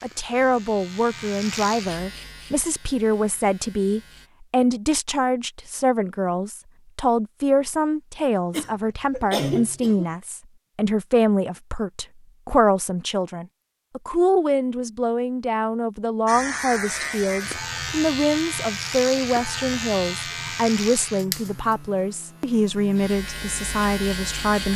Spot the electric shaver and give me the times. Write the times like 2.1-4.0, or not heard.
0.0-4.3, 16.2-24.7.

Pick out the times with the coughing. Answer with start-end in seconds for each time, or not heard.
8.5-10.1.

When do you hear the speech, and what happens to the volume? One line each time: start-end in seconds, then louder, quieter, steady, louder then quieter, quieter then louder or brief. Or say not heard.
0.0-24.7 steady.